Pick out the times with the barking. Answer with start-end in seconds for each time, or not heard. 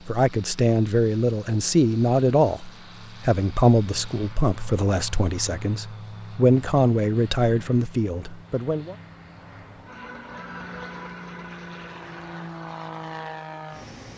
not heard.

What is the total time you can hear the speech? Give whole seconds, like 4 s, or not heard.
9 s.